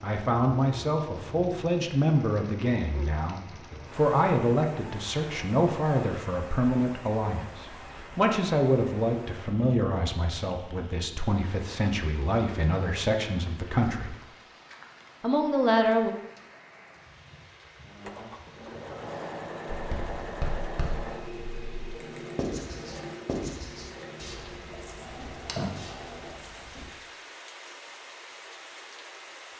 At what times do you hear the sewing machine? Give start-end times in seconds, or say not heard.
17.9-26.4.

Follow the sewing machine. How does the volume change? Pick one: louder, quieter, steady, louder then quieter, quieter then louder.
quieter.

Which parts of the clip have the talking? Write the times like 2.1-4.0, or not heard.
0.0-14.2, 15.2-16.1.